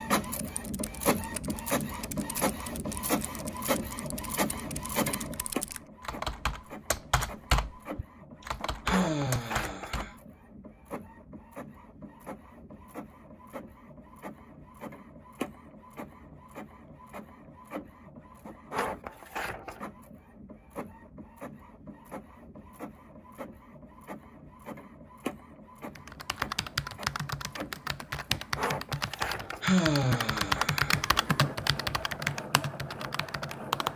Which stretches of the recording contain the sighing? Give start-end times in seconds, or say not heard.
8.8-10.1, 29.6-31.0.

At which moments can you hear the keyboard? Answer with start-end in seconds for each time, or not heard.
0.3-10.4, 25.9-33.9.